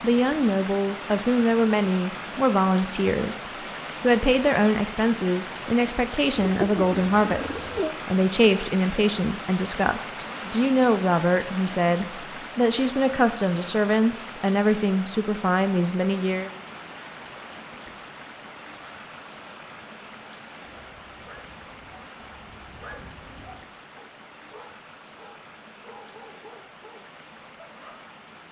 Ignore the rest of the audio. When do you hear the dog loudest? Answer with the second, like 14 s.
23 s.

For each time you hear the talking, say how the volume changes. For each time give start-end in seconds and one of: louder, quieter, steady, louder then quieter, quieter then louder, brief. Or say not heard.
0.0-16.5 steady.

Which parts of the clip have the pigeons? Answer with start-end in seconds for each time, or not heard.
6.3-8.0.